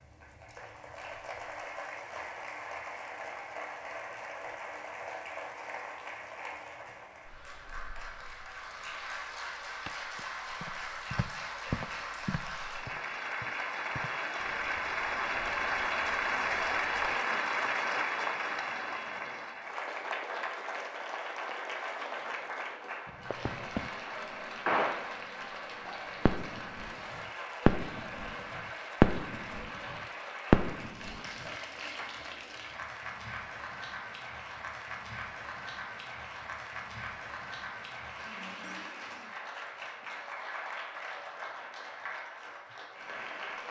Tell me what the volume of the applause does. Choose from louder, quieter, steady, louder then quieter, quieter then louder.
louder then quieter.